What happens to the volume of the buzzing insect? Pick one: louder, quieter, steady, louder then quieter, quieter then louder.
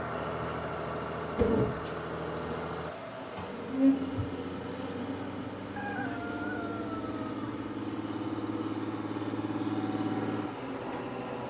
quieter.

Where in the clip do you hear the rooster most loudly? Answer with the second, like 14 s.
6 s.